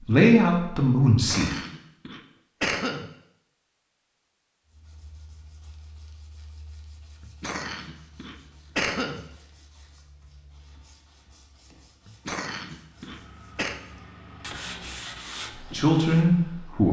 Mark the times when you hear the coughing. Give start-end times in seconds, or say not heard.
1.1-3.1, 7.2-9.2, 12.1-13.8.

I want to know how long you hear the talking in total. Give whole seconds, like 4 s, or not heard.
3 s.